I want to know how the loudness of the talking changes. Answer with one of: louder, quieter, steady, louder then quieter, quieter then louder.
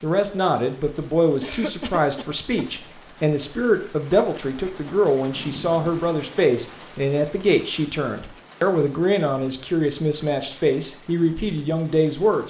steady.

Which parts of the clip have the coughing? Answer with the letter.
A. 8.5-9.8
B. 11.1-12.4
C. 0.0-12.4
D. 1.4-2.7
D.